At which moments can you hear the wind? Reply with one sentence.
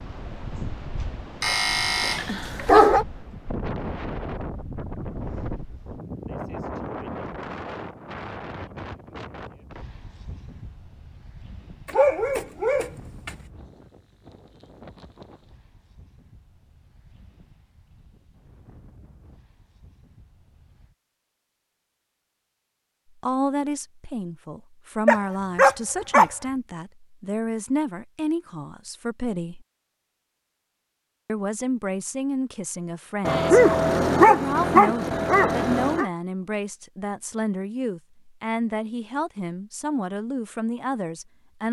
You can hear the wind from 0.0 to 20.9 s.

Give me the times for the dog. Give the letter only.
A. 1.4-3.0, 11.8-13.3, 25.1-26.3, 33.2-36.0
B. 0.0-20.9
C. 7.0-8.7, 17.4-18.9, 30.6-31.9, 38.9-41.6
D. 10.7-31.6
A.